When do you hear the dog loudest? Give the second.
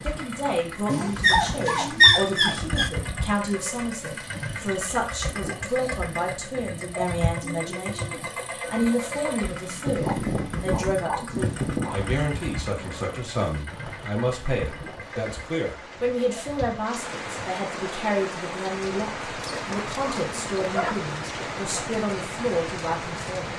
2 s.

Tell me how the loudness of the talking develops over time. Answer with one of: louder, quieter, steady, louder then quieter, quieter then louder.
steady.